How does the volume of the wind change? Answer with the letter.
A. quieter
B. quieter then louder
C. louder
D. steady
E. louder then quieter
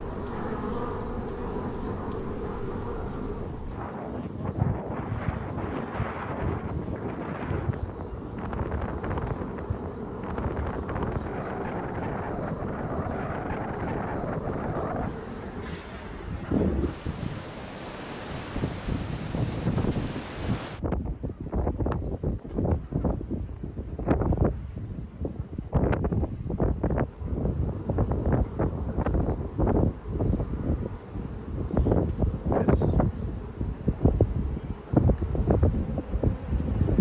C.